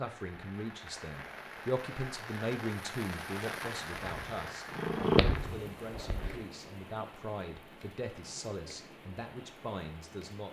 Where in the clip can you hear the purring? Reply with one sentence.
The purring can be heard from 4.0 to 6.5 s.